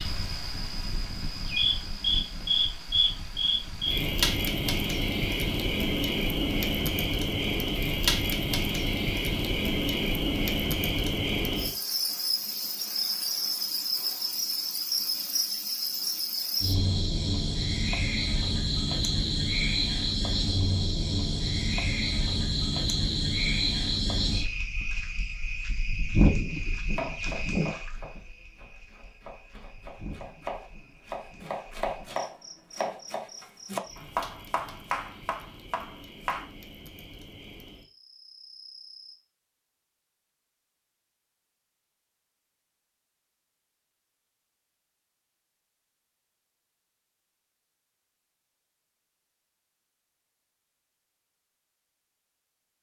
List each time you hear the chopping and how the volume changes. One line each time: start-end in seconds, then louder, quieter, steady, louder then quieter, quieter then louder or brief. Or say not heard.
26.9-36.5 louder.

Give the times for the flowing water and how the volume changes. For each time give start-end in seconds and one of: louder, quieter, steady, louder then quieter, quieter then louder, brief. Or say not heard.
not heard.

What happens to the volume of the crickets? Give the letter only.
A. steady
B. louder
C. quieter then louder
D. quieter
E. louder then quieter
D.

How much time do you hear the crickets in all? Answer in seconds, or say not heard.
39 s.